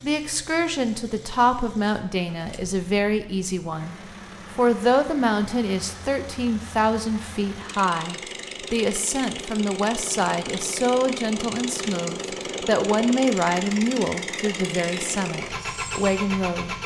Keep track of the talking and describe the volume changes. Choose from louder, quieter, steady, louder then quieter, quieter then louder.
steady.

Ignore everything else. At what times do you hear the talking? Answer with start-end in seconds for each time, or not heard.
0.0-16.8.